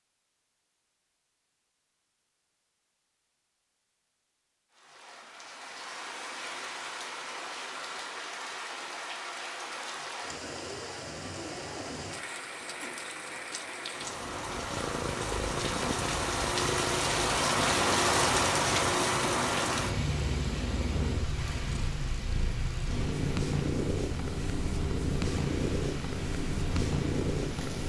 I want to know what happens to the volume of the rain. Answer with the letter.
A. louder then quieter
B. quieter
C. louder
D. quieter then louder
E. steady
A.